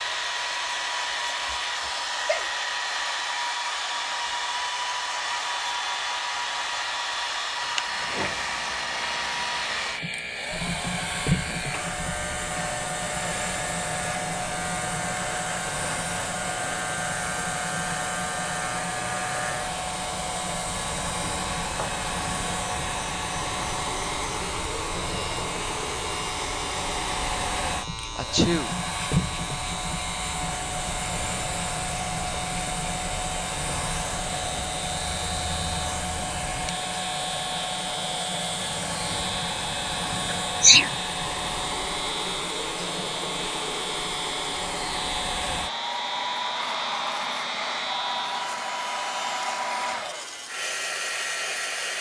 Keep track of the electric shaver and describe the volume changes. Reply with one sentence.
The loudness of the electric shaver stays about the same.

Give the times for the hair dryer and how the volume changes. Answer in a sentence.
You can hear the hair dryer from 0.0 to 51.9 s, at a steady volume.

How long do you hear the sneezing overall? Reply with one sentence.
You can hear the sneezing for 2 seconds altogether.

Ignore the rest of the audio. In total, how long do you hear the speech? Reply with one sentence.
You can't hear the speech here.